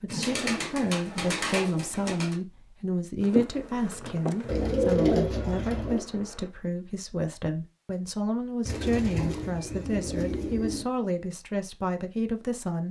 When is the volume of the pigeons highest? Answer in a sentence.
The loudest moment of the pigeons is at 5 seconds.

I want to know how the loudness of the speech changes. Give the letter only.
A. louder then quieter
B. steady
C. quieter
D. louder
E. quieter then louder
B.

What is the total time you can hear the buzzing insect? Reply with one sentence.
You can hear the buzzing insect for 3 seconds altogether.